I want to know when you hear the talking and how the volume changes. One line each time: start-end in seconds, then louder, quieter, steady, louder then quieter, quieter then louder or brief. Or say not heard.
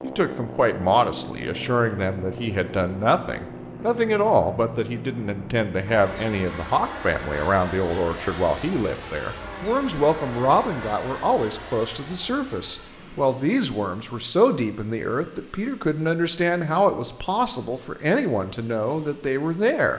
0.0-19.9 steady.